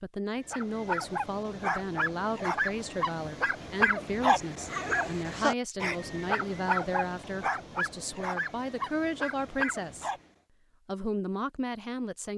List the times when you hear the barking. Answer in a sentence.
You can hear the barking from 0.5 to 10.2 s.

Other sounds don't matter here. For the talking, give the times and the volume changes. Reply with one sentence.
The talking can be heard from 0.0 to 10.1 s, at a steady volume; and briefly from 10.8 to 12.3 s.